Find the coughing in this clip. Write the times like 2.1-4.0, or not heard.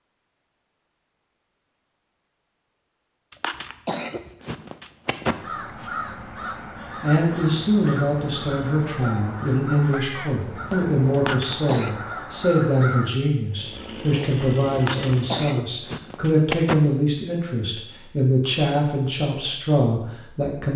3.3-5.3, 11.1-12.0, 14.8-16.8.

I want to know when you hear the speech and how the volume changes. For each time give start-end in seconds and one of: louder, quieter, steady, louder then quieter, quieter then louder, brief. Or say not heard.
7.0-20.7 steady.